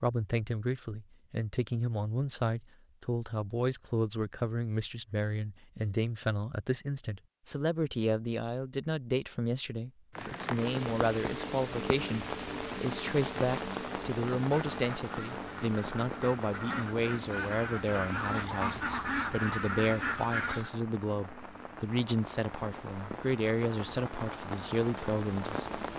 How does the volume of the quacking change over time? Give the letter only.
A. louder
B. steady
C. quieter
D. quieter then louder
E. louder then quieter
A.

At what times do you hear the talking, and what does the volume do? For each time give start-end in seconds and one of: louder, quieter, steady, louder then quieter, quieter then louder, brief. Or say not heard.
0.0-25.8 steady.